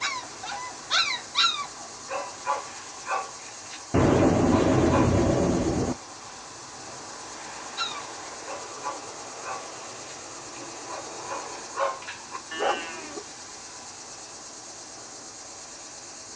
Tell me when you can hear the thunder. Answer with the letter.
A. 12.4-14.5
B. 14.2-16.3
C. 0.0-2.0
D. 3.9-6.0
D.